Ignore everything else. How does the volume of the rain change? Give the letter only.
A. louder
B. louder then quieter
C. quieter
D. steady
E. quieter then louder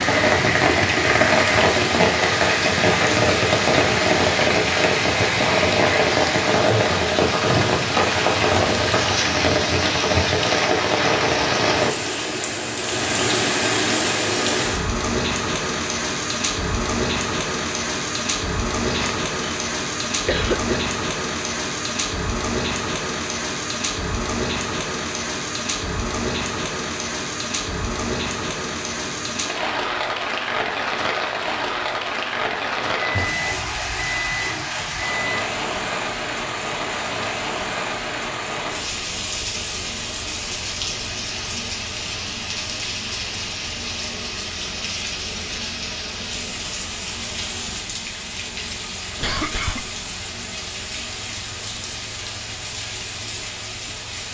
C.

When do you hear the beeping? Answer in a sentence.
You can hear the beeping from 32.8 to 35.4 s.